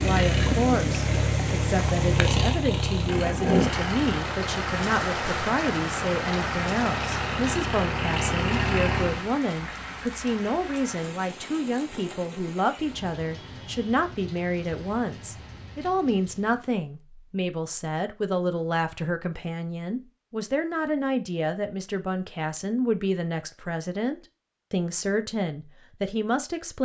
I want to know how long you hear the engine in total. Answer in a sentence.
The engine can be heard for 9 seconds in total.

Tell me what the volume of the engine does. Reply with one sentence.
The volume of the engine goes down, then up.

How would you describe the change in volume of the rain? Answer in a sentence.
The volume of the rain goes down.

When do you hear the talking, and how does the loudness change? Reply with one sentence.
The talking can be heard from 0.0 to 26.7 s, at a steady volume.